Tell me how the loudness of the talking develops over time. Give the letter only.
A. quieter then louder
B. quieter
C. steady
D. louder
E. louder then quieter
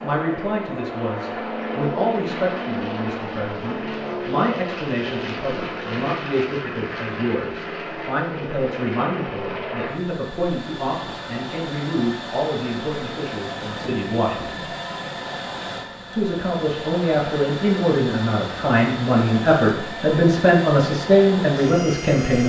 D.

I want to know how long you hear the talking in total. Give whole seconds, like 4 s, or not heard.
21 s.